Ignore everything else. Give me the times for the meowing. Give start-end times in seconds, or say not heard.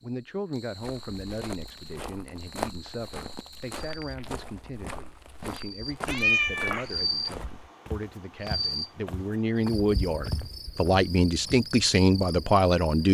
6.0-7.3.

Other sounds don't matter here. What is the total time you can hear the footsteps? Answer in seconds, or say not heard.
11 s.